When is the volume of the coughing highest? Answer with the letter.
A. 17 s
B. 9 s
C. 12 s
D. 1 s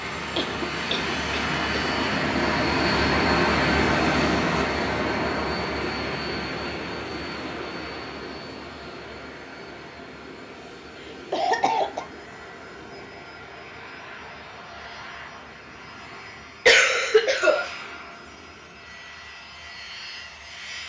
A.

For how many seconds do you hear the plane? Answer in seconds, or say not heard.
21 s.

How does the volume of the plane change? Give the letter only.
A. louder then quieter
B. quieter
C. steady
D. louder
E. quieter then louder
B.